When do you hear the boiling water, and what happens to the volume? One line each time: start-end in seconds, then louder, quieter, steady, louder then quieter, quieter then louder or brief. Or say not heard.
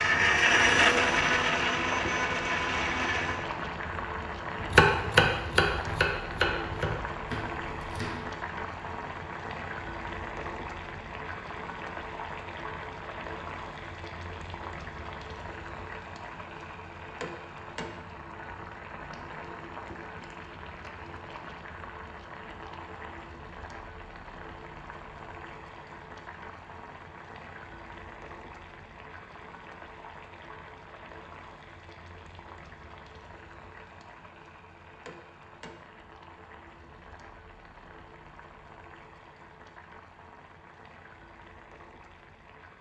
0.0-42.7 quieter.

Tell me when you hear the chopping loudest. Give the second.
5 s.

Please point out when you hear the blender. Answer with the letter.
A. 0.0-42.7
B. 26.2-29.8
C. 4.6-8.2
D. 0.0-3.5
D.